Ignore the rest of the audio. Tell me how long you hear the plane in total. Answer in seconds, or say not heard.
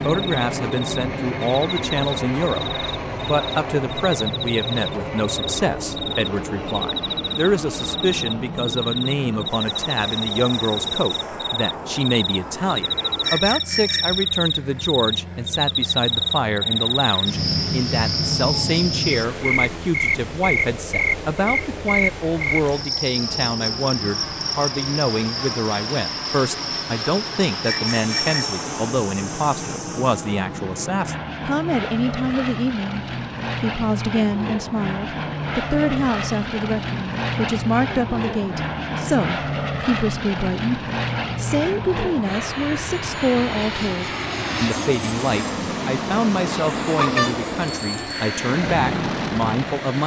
50 s.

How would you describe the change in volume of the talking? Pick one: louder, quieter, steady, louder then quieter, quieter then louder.
steady.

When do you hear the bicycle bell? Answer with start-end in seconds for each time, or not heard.
13.2-14.2, 27.6-28.6, 47.0-48.3.